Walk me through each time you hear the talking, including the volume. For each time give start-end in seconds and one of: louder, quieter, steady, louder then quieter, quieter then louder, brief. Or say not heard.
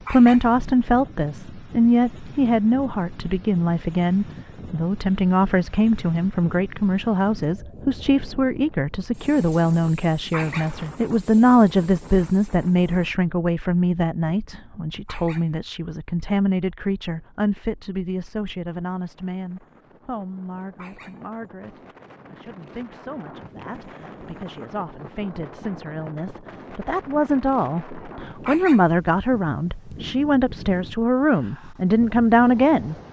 0.1-33.0 quieter then louder.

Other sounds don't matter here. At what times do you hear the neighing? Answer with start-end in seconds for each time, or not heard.
not heard.